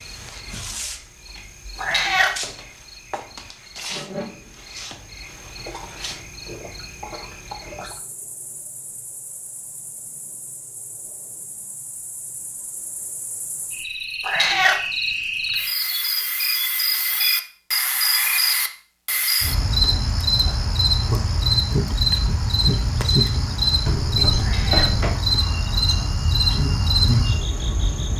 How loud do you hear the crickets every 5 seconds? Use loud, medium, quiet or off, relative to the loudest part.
quiet, quiet, quiet, loud, loud, loud.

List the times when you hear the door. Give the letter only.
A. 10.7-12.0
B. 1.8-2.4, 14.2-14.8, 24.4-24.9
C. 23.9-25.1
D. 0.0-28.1
C.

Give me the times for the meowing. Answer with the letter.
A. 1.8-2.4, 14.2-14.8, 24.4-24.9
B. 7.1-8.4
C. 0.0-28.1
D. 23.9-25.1
A.